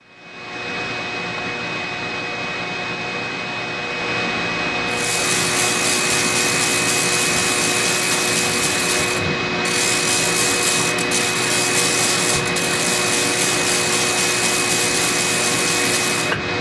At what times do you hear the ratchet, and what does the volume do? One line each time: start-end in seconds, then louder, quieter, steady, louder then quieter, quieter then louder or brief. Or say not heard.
4.8-16.4 steady.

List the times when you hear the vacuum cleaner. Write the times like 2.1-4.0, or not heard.
0.0-16.5.